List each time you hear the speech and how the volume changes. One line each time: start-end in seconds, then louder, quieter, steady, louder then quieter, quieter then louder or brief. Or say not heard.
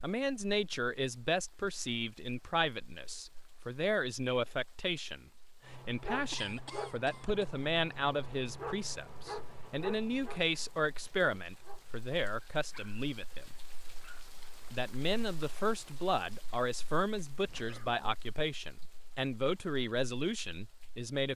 0.0-13.4 steady
14.7-21.3 steady.